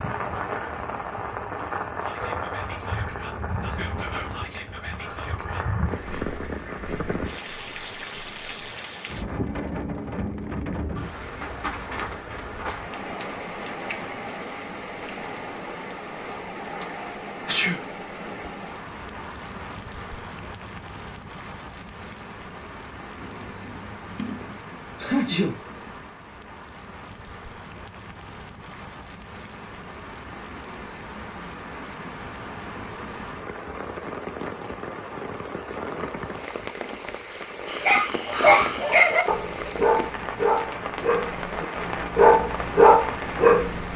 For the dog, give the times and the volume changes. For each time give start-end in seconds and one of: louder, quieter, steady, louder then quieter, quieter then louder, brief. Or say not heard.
37.6-43.9 quieter then louder.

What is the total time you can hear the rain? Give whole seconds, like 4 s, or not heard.
44 s.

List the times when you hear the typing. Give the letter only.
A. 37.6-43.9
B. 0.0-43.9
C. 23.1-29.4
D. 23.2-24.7
D.